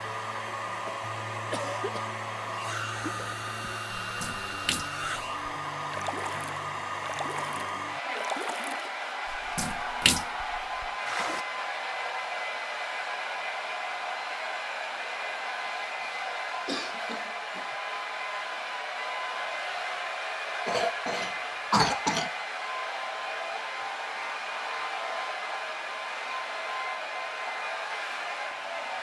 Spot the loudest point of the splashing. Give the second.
10 s.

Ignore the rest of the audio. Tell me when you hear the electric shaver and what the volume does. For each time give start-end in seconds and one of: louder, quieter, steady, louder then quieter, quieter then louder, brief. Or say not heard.
not heard.